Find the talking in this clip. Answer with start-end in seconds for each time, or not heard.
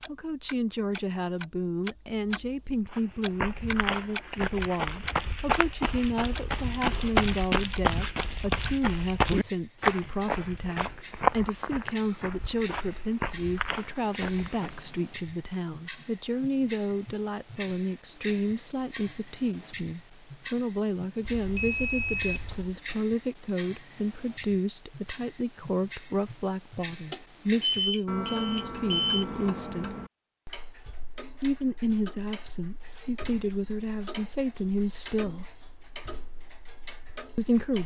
0.1-29.9, 31.4-35.5, 37.4-37.8.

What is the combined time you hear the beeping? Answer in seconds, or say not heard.
5 s.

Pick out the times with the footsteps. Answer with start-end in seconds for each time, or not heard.
2.9-14.8.